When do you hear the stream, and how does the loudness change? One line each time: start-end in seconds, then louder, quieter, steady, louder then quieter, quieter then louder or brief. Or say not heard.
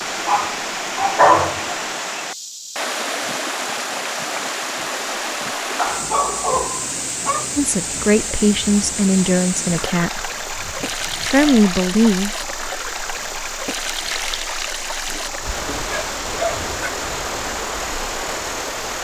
0.0-18.9 steady.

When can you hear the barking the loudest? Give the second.
1 s.